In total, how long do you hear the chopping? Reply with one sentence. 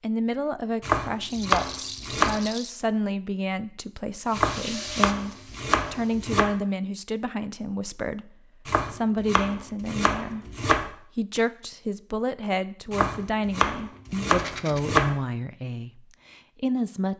The chopping can be heard for 8 seconds in total.